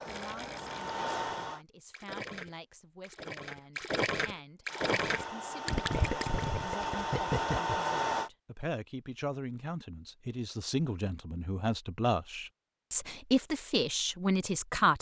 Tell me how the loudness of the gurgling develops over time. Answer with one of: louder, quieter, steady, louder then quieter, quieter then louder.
louder.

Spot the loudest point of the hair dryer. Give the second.
8 s.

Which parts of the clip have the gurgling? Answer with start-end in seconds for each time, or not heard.
0.0-7.8.